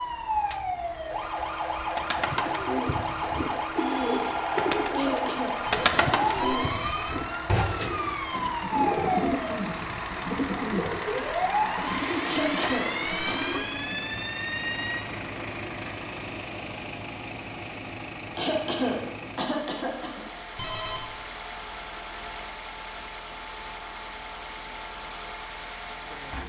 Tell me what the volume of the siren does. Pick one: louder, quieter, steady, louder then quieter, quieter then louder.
steady.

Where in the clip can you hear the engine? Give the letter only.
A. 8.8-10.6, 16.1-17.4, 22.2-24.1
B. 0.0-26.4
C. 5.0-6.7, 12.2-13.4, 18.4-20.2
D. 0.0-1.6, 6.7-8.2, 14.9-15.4
B.